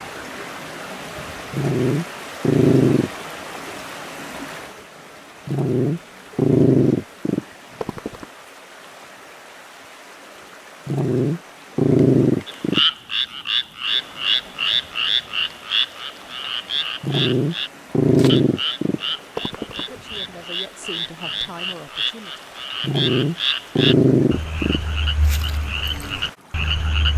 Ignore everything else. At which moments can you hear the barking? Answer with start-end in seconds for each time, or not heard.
1.5-3.1, 5.5-8.2, 10.8-12.8, 17.0-19.9, 22.8-24.8.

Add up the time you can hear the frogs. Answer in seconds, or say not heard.
15 s.